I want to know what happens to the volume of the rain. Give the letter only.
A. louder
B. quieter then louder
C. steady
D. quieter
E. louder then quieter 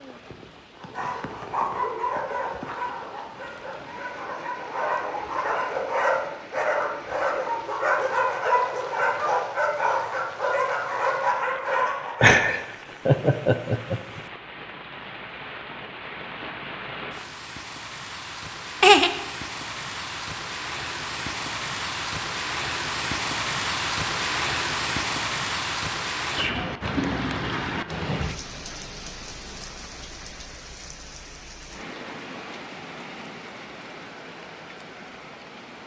E.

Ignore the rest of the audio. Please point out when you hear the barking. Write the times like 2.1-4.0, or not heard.
0.8-12.3.